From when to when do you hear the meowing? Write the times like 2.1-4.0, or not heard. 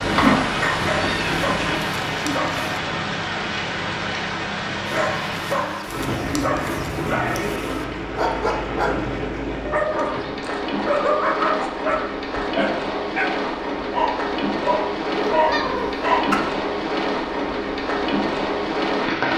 0.0-1.9, 15.1-16.4.